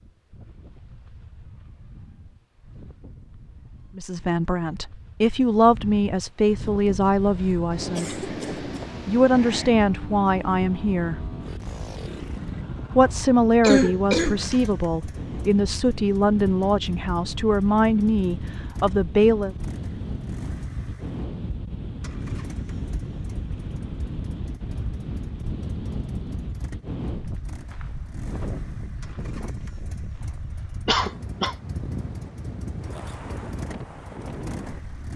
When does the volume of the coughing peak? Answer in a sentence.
The volume of the coughing peaks at 14 seconds.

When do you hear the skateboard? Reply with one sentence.
The skateboard can't be heard in this clip.